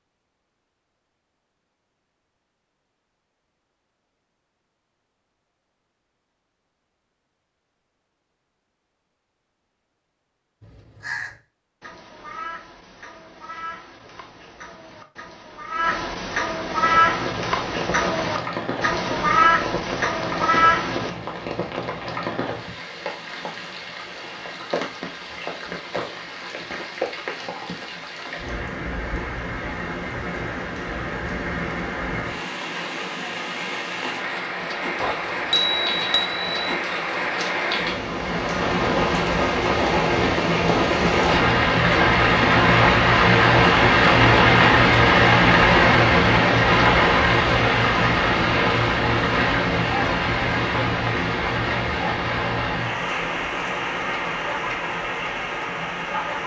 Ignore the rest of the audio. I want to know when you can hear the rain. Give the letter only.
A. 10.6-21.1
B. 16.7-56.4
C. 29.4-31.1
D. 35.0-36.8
B.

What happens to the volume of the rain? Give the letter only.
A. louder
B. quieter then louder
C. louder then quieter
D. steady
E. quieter
C.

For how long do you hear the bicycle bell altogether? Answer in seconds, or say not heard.
2 s.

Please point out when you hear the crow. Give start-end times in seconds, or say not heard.
10.6-21.1.